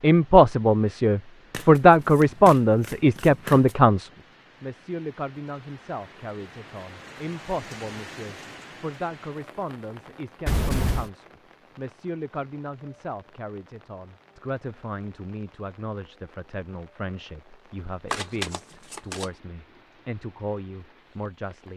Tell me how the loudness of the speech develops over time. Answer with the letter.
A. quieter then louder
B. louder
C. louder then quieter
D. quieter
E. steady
D.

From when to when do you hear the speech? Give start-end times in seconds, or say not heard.
0.0-21.7.